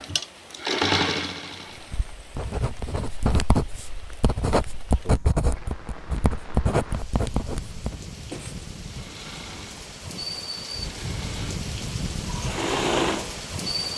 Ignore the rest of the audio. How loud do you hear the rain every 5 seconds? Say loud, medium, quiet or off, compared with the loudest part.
quiet, medium, loud.